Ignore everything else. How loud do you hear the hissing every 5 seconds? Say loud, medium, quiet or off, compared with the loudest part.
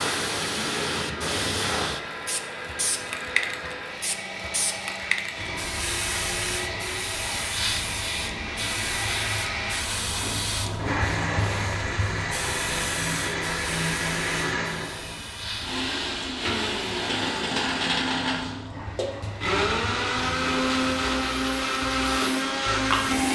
loud, loud, loud, medium, loud.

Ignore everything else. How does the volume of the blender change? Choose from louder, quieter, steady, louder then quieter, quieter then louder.
louder.